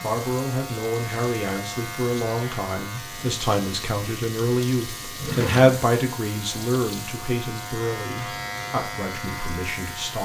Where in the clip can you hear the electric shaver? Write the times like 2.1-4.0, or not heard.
0.0-10.1.